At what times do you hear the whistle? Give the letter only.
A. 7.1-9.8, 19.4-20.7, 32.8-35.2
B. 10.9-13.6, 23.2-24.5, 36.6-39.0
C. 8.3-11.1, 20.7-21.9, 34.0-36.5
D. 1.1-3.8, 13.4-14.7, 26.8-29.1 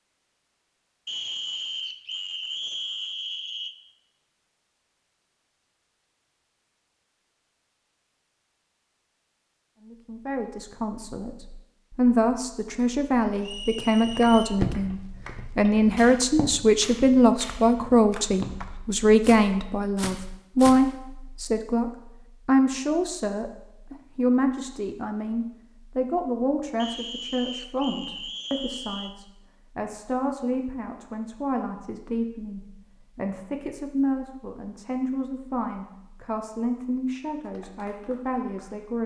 D.